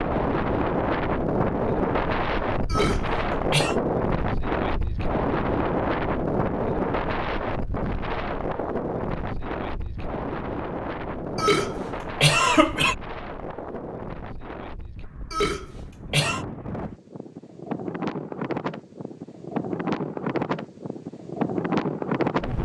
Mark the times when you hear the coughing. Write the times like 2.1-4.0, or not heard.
2.7-3.8, 11.3-12.9, 15.3-16.4.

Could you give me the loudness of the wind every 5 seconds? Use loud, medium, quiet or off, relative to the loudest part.
loud, loud, medium, medium, loud.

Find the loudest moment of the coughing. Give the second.
12 s.